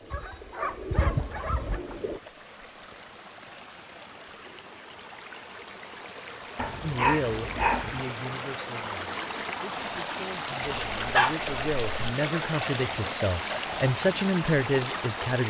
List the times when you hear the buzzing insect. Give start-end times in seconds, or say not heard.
not heard.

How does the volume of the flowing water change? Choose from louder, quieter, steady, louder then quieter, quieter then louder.
louder.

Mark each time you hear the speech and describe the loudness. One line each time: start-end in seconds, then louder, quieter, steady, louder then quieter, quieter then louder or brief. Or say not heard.
6.8-15.4 quieter then louder.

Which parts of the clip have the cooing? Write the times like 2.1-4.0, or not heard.
0.0-2.2.